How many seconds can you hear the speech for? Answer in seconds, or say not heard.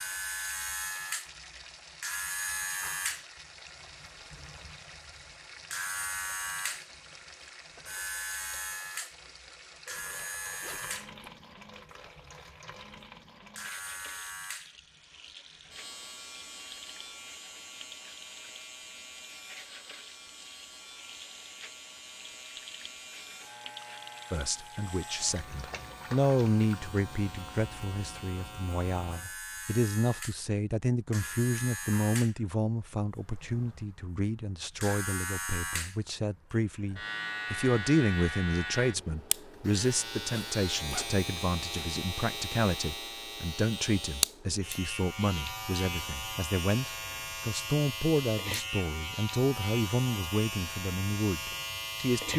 28 s.